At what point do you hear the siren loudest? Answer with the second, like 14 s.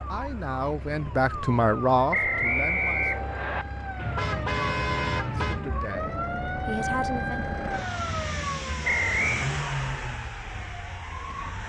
7 s.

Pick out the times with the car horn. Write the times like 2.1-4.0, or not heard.
4.0-5.7.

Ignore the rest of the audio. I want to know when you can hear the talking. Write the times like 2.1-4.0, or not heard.
0.1-3.0, 5.5-7.5.